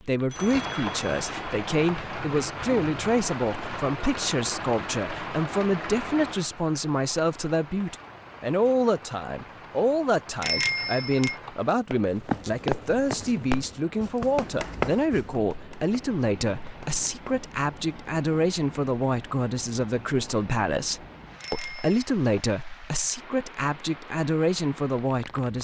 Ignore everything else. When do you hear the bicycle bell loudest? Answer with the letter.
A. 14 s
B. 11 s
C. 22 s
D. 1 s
B.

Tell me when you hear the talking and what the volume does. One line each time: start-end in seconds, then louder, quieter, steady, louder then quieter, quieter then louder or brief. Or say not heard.
0.1-25.5 steady.